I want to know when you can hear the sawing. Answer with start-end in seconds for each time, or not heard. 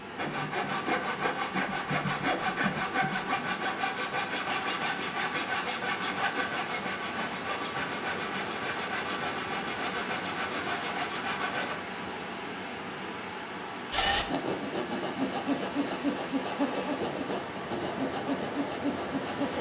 0.1-11.8, 13.9-19.5.